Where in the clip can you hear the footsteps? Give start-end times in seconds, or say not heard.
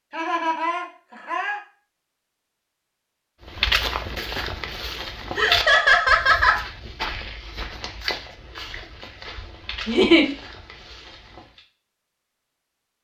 3.5-11.7.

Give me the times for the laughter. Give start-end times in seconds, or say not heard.
0.1-1.6, 5.3-6.6, 9.8-10.2.